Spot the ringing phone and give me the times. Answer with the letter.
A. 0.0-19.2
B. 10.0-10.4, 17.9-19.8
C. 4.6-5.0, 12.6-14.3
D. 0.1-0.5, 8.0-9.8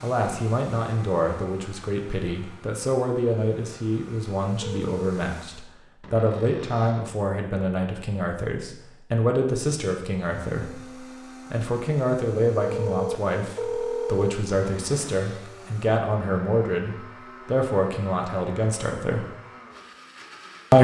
C.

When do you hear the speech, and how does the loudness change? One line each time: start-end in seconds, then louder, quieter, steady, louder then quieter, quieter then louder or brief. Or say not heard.
0.0-19.2 steady.